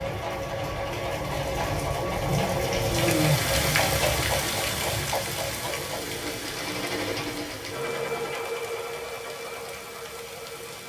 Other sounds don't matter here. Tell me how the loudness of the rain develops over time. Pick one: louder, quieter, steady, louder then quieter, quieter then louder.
louder then quieter.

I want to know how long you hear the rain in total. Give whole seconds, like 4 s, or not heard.
11 s.